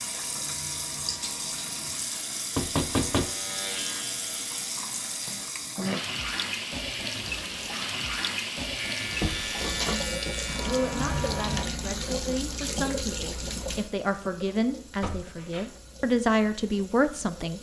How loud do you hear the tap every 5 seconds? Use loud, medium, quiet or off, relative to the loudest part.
loud, loud, loud, quiet.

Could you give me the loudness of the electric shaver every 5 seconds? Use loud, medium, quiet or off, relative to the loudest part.
medium, loud, loud, off.